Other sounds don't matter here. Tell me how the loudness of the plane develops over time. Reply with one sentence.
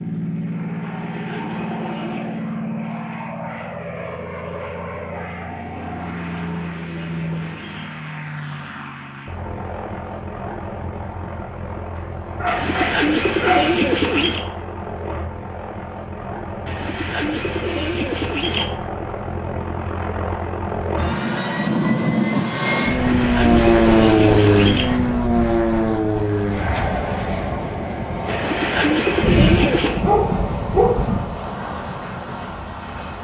The loudness of the plane goes up, then down.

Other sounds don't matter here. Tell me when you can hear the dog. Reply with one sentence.
The dog can be heard from 12.3 to 13.8 s and from 29.2 to 31.3 s.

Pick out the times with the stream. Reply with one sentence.
The stream can't be heard in this clip.